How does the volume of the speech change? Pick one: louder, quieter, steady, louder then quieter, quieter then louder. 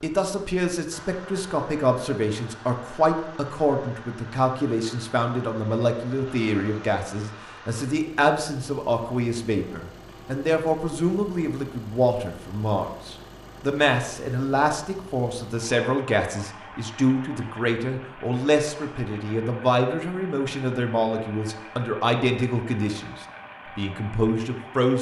steady.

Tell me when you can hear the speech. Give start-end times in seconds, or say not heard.
0.0-24.9.